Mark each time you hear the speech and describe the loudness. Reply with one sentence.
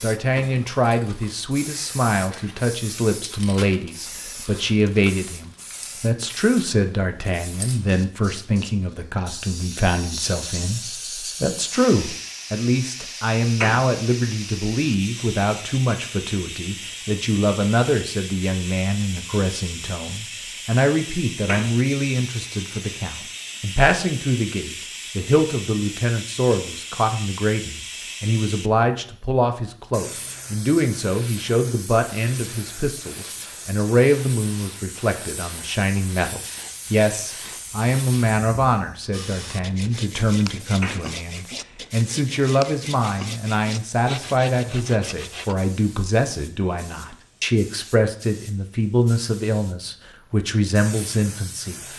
You can hear the speech from 0.0 to 51.8 s, at a steady volume.